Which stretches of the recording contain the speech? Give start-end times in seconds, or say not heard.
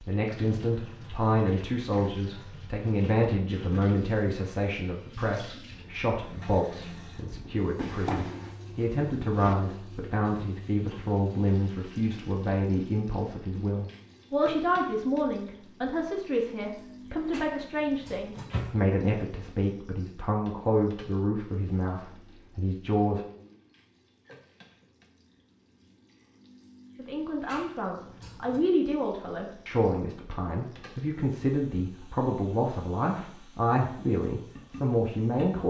0.0-23.2, 26.9-35.6.